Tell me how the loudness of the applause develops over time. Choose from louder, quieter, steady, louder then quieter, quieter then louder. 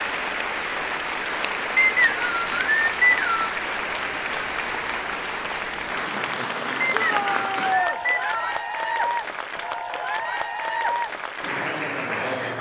steady.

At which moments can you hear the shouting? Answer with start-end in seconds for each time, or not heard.
6.9-8.0.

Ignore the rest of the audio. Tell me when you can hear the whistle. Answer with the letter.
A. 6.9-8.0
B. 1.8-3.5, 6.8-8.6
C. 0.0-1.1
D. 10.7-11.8
B.